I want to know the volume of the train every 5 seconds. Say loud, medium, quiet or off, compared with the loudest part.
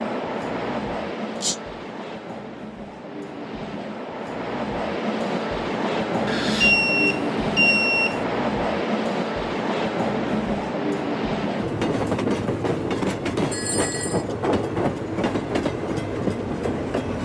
medium, loud, loud, loud.